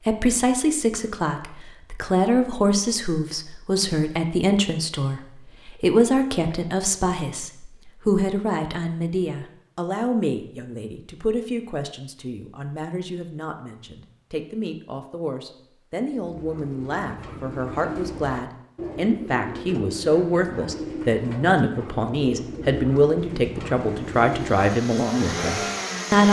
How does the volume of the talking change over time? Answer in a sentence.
The loudness of the talking goes down, then up.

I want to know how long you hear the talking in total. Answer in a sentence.
You can hear the talking for 26 seconds altogether.